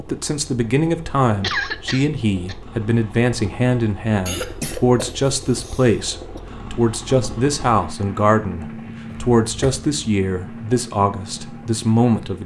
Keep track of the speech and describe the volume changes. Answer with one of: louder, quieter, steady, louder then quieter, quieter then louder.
steady.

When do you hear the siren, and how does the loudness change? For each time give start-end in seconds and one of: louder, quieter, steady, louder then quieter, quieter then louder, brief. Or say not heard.
not heard.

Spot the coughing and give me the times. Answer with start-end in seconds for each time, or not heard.
1.4-2.5, 4.2-6.4, 9.1-10.2.